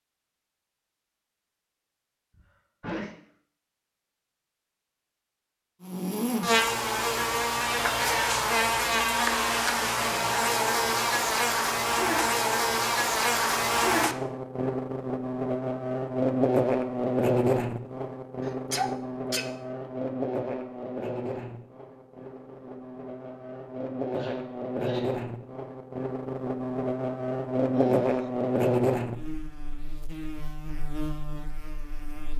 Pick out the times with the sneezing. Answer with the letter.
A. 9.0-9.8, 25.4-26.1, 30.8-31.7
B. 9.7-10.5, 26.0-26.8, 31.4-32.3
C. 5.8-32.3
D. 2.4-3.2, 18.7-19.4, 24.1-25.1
D.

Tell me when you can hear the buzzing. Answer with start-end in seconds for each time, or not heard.
5.8-32.3.